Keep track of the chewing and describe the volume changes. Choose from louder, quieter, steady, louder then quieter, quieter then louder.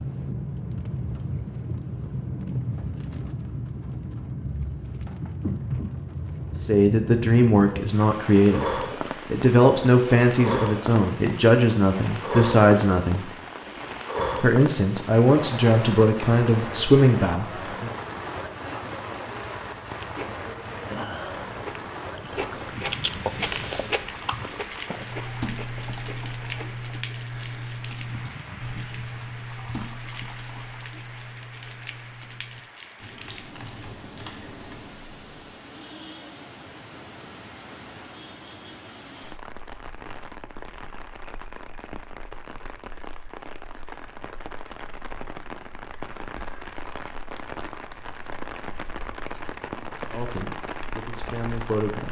louder then quieter.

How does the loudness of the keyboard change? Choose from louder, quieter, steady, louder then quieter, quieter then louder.
quieter.